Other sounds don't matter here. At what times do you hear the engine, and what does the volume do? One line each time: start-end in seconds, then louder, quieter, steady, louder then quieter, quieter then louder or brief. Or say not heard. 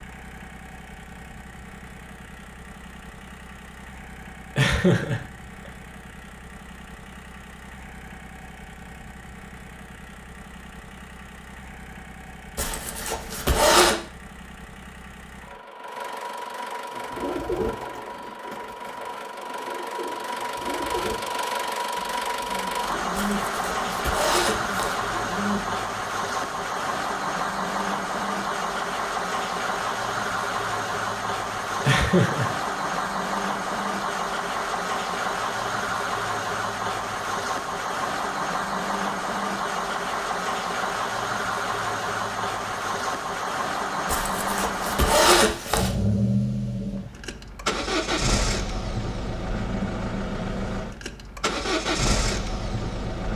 0.0-53.3 louder.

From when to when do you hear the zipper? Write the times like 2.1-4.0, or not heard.
12.6-13.9, 23.1-25.0, 44.0-46.0.